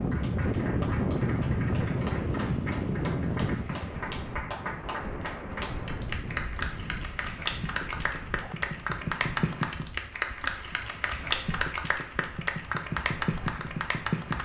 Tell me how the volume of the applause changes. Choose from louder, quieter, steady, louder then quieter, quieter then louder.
louder.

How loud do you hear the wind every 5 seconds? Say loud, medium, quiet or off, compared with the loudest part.
loud, medium, quiet.